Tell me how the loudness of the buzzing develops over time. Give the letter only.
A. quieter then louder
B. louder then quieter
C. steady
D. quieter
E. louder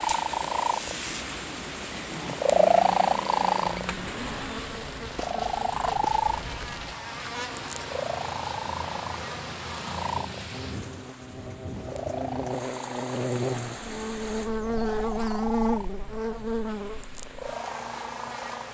E.